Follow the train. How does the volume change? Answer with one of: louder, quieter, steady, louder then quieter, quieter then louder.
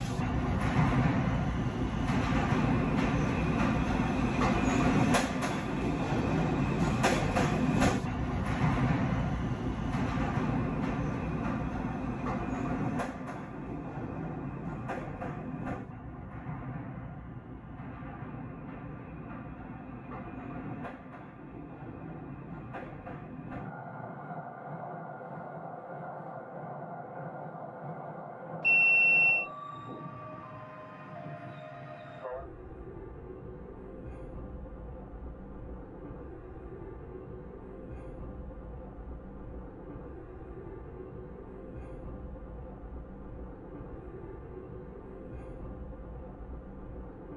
quieter.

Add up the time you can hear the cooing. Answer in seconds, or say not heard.
not heard.